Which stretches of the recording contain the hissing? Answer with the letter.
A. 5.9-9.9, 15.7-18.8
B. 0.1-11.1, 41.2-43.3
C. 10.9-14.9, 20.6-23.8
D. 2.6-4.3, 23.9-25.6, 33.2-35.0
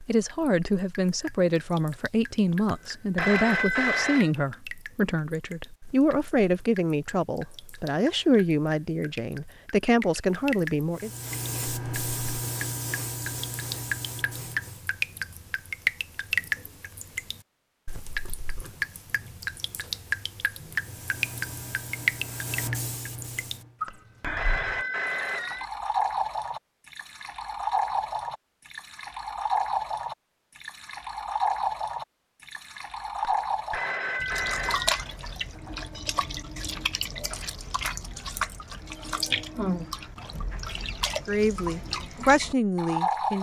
C.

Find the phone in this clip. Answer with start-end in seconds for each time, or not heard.
2.6-4.3, 23.9-25.6, 33.2-35.0.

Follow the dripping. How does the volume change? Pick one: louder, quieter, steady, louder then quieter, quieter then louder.
louder.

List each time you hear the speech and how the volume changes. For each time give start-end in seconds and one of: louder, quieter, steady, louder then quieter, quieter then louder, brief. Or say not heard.
0.1-11.1 steady
41.2-43.3 brief.